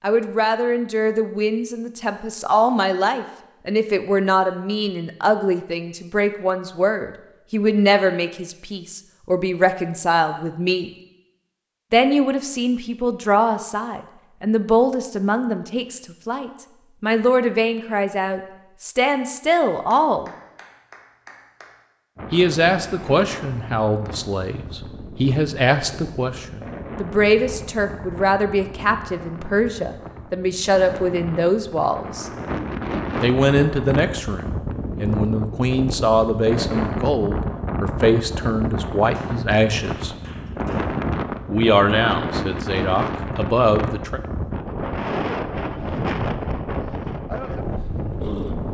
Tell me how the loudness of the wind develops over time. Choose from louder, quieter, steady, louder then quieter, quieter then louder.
louder.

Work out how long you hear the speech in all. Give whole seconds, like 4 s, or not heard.
39 s.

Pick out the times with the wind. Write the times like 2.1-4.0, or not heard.
22.1-48.6.